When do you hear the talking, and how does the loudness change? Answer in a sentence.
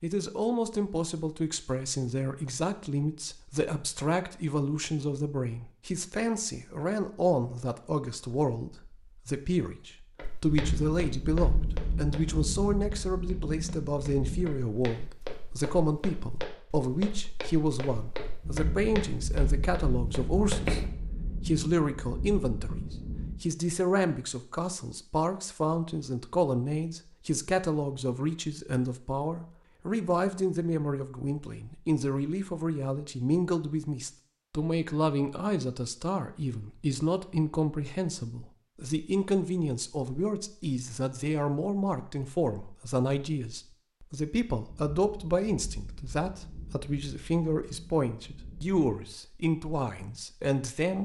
The talking can be heard from 0.0 to 51.0 s, at a steady volume.